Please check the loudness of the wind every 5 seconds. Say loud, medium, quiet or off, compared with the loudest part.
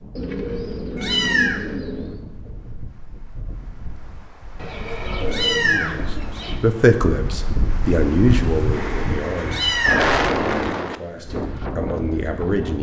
quiet, medium, loud.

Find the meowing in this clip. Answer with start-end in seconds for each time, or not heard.
0.9-1.6, 5.2-6.5, 9.4-10.2.